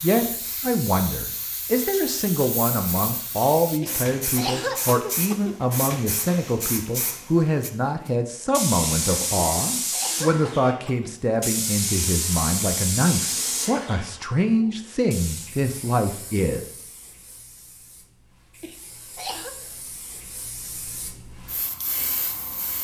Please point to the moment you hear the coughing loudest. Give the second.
5 s.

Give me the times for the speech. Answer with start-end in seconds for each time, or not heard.
0.0-16.6.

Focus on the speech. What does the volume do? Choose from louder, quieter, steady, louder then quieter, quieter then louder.
steady.